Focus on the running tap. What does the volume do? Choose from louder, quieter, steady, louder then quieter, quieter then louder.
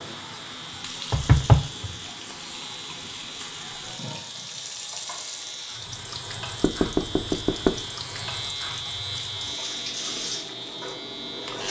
steady.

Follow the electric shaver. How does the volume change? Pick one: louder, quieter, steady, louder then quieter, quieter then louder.
louder.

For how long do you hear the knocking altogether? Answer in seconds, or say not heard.
2 s.